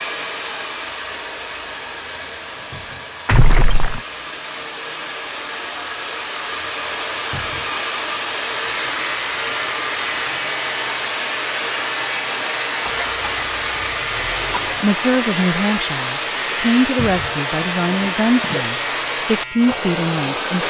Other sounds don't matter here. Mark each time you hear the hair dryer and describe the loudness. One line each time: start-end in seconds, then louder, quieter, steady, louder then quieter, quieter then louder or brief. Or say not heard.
0.0-20.6 louder.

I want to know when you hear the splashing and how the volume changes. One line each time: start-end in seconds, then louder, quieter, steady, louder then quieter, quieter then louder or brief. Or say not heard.
not heard.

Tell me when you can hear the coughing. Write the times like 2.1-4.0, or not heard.
3.2-4.0, 12.8-14.8.